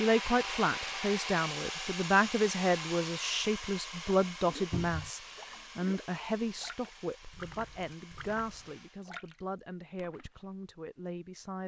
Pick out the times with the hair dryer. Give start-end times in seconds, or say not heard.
0.0-9.1.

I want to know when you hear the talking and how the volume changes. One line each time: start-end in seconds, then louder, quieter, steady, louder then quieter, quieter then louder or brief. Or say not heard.
0.0-11.6 quieter.